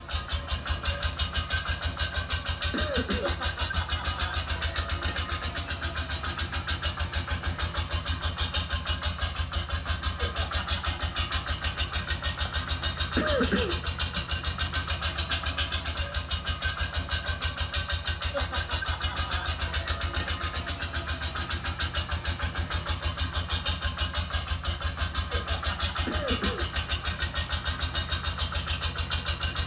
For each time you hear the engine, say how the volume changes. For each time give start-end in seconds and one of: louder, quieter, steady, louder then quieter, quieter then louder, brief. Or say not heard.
0.0-29.6 steady.